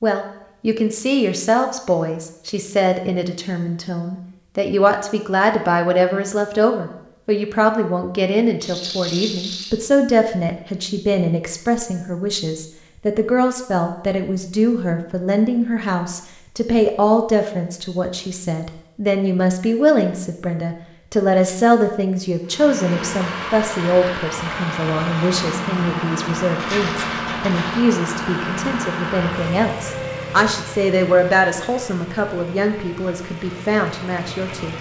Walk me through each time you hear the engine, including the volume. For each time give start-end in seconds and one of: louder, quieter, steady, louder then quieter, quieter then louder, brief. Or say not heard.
22.4-34.7 quieter.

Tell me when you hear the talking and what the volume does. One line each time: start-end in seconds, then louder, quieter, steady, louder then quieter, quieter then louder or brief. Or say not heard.
0.0-34.7 steady.